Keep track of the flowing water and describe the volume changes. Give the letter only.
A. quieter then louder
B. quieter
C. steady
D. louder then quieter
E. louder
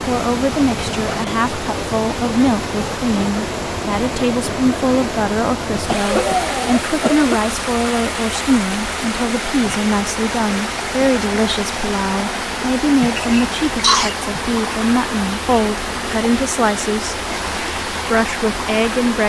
C.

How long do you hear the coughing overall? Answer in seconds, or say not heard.
3 s.